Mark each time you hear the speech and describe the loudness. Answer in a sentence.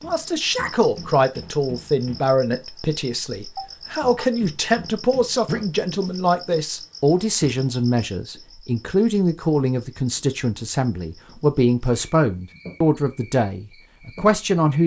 The speech can be heard from 0.0 to 14.8 s, at a steady volume.